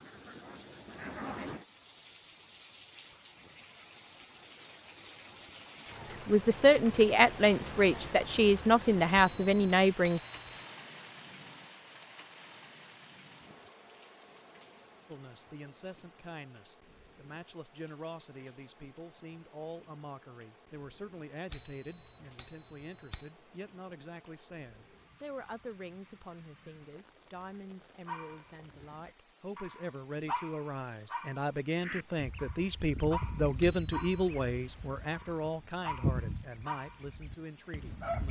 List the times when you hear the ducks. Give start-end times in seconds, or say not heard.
0.0-1.6, 31.8-38.2.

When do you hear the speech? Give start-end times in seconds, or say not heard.
6.0-10.2, 15.1-38.2.